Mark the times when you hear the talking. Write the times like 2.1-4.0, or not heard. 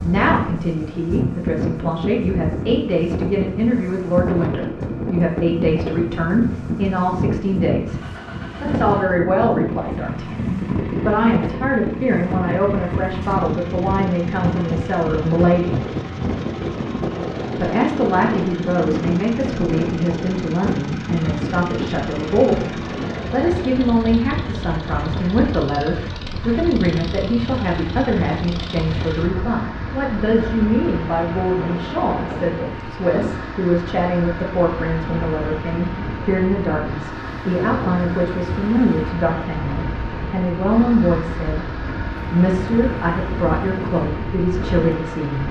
0.0-8.0, 8.6-15.8, 17.6-41.6, 42.3-45.4.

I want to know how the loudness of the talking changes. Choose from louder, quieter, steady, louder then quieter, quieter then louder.
steady.